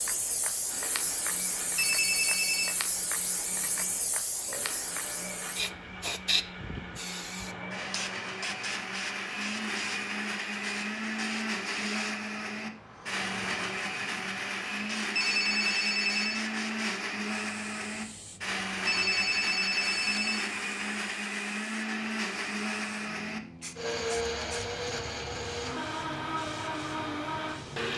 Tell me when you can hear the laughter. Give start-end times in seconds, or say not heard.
not heard.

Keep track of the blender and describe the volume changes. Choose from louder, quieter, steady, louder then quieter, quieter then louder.
louder.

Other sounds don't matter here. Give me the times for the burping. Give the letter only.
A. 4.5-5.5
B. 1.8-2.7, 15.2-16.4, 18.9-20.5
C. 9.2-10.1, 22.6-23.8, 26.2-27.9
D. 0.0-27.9
A.